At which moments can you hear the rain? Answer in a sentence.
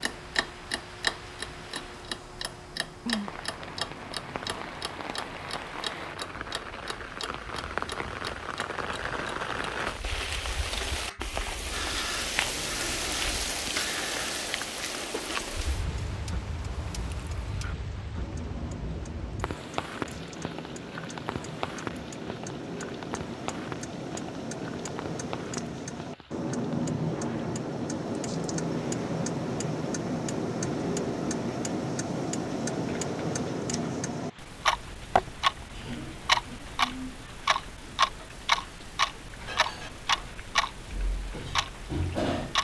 You can hear the rain from 0.0 to 42.5 s.